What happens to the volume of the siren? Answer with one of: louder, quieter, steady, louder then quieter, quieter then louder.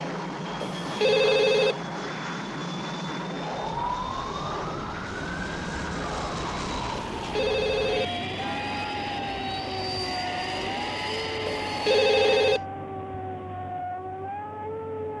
steady.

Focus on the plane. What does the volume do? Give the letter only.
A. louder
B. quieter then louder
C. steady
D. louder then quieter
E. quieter
C.